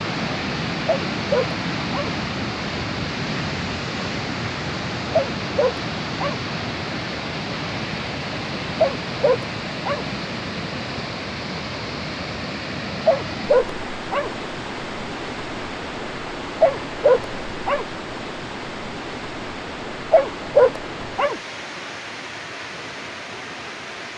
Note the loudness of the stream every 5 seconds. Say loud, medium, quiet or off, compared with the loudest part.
loud, loud, loud, medium, medium.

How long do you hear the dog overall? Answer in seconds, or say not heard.
8 s.